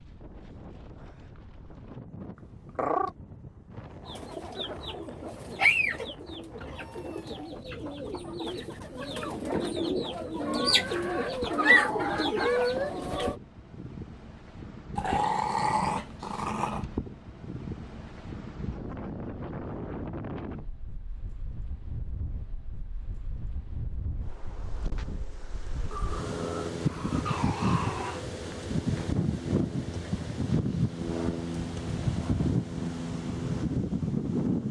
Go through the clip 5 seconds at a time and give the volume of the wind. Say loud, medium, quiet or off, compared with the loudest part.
quiet, quiet, quiet, medium, quiet, loud, loud.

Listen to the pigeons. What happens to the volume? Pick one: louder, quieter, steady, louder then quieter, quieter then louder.
quieter then louder.